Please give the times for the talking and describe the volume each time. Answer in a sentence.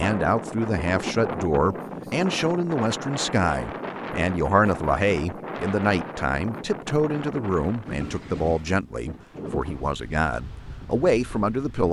You can hear the talking from 0.0 to 11.8 s, at a steady volume.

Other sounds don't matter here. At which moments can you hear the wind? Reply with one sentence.
The wind can be heard from 0.0 to 11.8 s.